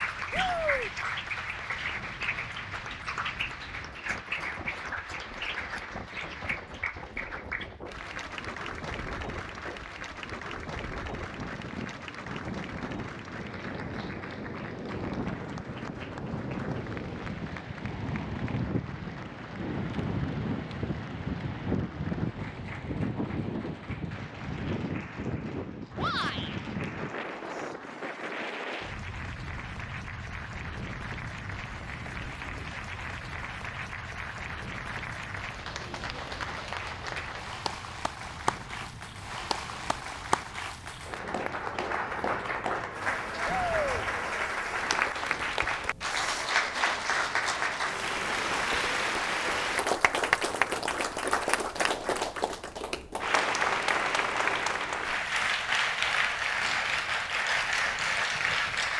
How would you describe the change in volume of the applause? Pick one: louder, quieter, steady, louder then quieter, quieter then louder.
quieter then louder.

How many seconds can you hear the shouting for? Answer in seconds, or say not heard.
2 s.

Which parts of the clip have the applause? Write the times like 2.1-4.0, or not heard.
0.0-58.9.